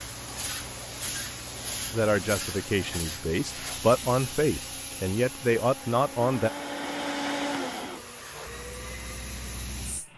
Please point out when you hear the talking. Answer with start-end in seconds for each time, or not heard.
1.9-6.5.